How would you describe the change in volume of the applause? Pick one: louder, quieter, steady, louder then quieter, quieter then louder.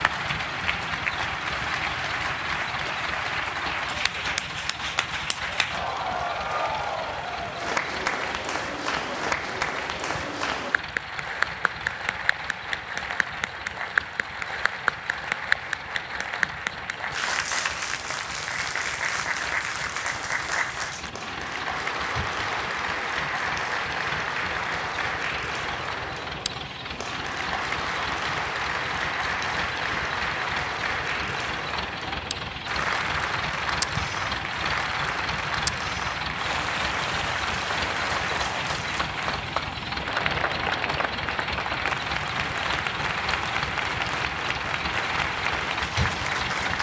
steady.